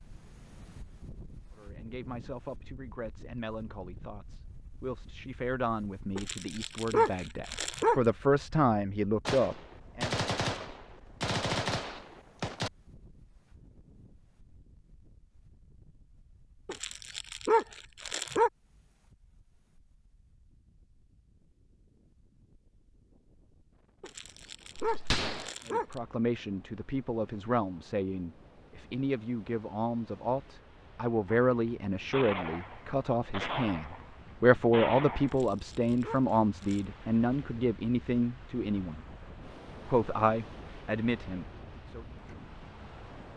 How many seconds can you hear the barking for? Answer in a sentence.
The barking can be heard for 7 seconds in total.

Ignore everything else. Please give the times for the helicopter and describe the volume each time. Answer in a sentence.
You can't hear the helicopter here.